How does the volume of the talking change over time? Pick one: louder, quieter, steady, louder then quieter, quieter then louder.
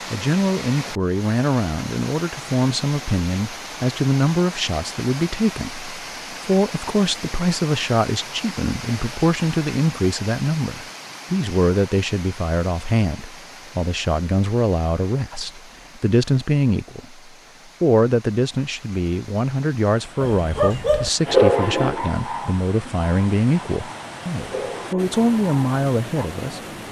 steady.